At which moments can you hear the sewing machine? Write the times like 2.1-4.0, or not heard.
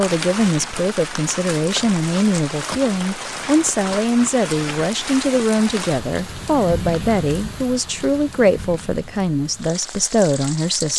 not heard.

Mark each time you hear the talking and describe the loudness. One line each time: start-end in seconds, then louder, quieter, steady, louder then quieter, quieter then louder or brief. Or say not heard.
0.0-10.9 steady.